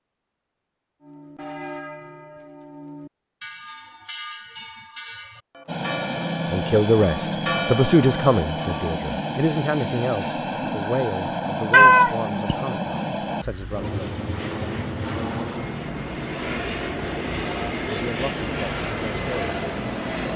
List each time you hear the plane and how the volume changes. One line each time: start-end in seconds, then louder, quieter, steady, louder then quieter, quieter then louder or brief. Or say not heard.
5.7-20.3 steady.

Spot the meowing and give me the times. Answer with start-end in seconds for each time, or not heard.
11.7-12.6.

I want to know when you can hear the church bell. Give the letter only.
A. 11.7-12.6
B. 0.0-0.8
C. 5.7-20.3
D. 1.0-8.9
D.